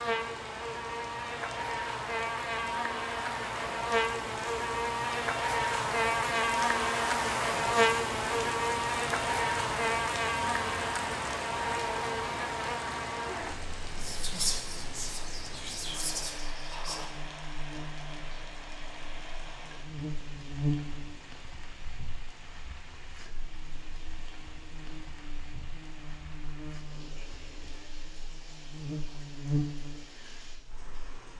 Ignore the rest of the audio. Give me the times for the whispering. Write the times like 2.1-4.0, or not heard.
13.9-17.1.